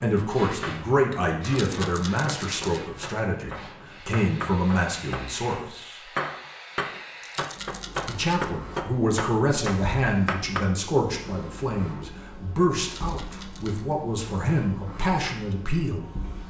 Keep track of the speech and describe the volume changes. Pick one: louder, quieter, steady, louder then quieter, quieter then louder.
steady.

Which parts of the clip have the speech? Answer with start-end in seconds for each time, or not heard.
0.0-6.0, 8.1-16.1.